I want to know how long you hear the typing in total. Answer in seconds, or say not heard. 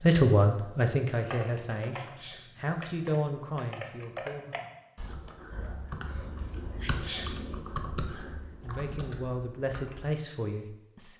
9 s.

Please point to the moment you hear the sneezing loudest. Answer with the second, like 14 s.
7 s.